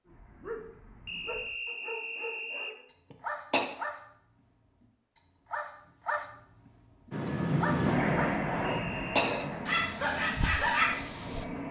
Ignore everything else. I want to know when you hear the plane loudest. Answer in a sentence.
The volume of the plane peaks at 8 seconds.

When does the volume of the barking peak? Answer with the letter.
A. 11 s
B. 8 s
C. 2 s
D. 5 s
A.